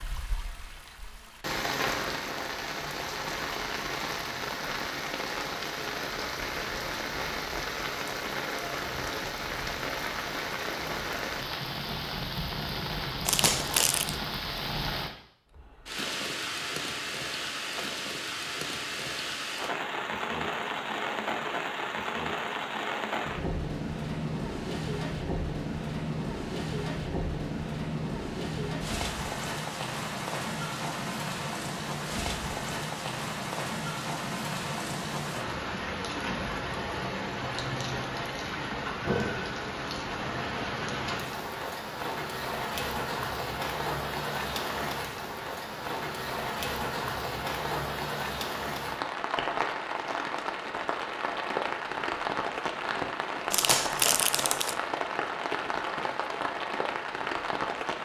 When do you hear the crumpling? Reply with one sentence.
The crumpling can be heard from 13.2 to 14.2 s and from 53.5 to 54.8 s.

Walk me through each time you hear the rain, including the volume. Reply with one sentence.
You can hear the rain from 0.0 to 58.0 s, at a steady volume.